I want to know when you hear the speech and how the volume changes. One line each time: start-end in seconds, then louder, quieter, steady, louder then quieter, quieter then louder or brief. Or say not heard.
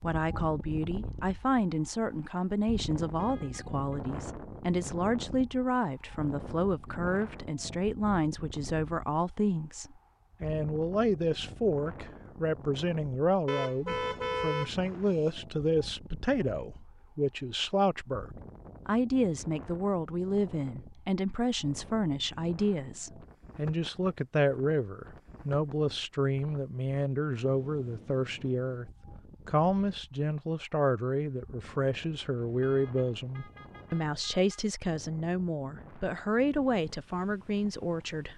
0.0-38.3 steady.